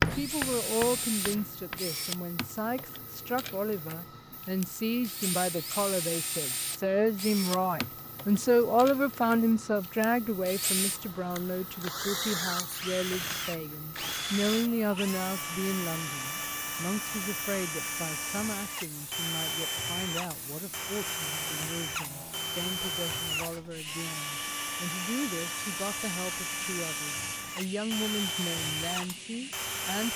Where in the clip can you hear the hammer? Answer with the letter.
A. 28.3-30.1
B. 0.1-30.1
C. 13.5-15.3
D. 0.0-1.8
D.